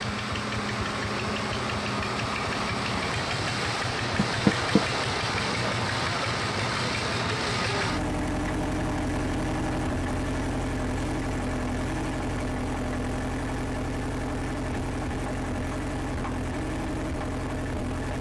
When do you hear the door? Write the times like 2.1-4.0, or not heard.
4.2-4.8.